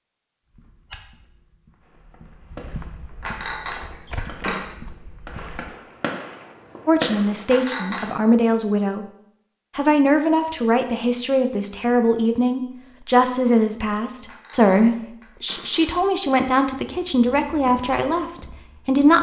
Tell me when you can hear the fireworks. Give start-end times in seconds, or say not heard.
1.8-7.7.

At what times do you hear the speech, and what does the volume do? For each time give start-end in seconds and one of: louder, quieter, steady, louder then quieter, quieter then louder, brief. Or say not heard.
6.8-9.1 brief
9.8-19.1 steady.